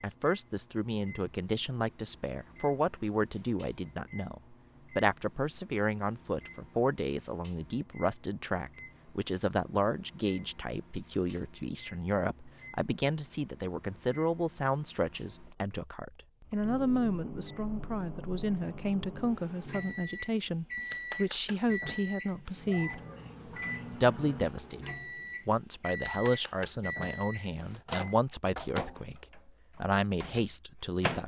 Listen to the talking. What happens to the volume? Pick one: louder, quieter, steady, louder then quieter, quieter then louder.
steady.